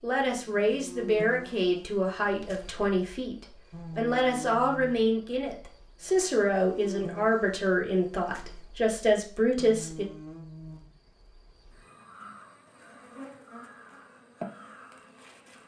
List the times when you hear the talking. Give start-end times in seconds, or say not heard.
0.0-10.1.